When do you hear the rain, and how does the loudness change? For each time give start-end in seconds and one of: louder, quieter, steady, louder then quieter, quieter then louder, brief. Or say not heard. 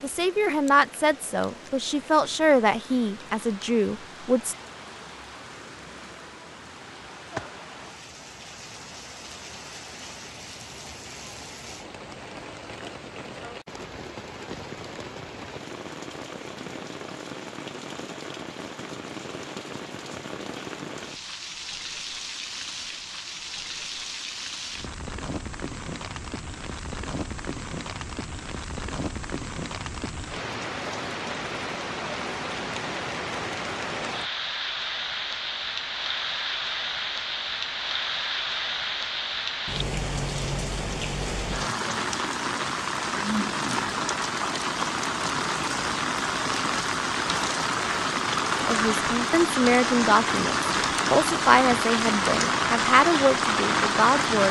0.0-54.4 louder.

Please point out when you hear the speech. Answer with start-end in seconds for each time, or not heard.
0.0-4.5, 48.6-54.4.